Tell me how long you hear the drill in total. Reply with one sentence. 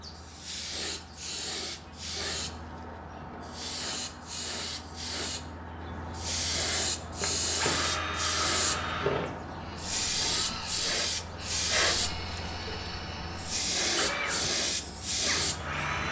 You can hear the drill for 9 seconds altogether.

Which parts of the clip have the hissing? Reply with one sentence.
You can hear the hissing from 0.0 to 16.0 s.